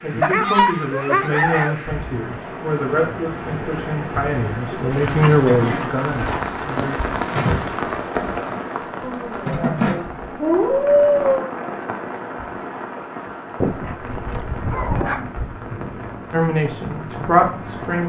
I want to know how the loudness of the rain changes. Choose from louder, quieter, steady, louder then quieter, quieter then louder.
louder then quieter.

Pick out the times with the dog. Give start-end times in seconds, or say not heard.
0.2-1.8, 5.0-6.6, 9.0-11.5, 13.6-15.3.